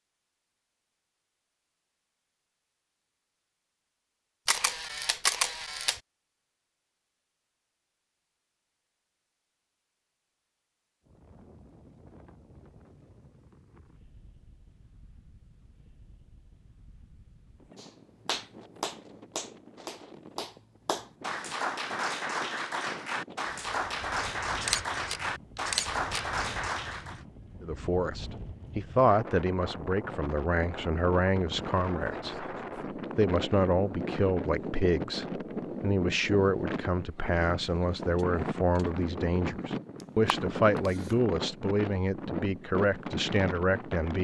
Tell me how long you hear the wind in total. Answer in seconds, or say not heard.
33 s.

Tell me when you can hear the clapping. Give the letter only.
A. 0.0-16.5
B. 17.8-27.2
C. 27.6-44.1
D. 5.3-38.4
B.